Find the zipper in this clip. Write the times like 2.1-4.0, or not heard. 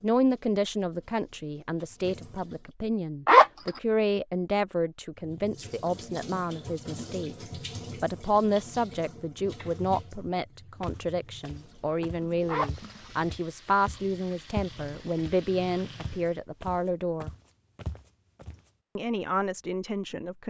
3.2-3.8, 12.4-12.9.